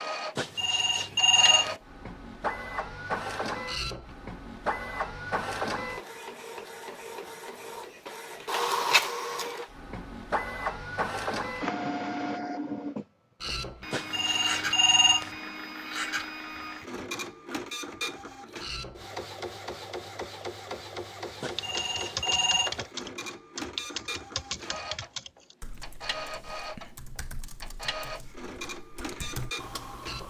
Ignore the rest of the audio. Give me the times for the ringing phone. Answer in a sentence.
You can hear the ringing phone from 0.3 to 1.8 s, from 13.9 to 15.3 s and from 21.4 to 22.8 s.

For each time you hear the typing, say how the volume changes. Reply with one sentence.
You can hear the typing from 21.6 to 30.2 s, getting quieter then louder.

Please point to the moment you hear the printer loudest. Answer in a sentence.
The volume of the printer peaks at 9 seconds.